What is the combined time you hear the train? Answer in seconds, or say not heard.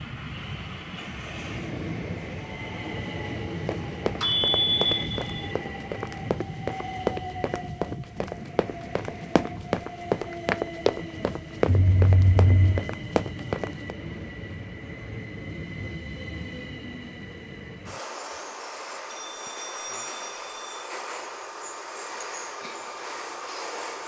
24 s.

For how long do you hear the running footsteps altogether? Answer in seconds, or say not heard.
10 s.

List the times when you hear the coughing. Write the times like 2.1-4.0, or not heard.
not heard.